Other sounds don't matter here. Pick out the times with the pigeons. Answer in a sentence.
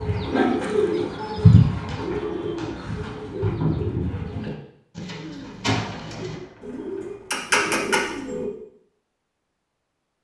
You can hear the pigeons from 0.0 to 8.4 s.